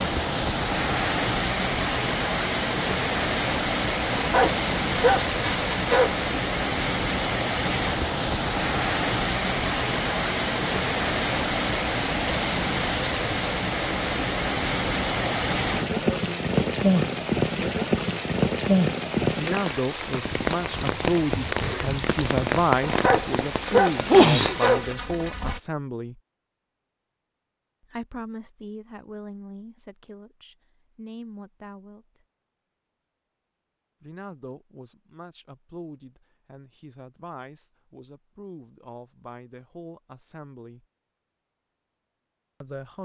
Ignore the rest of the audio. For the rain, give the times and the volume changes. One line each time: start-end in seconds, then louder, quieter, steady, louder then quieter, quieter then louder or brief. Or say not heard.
0.0-24.8 steady.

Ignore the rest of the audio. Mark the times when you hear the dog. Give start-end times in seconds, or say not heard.
4.1-6.2, 22.8-25.6.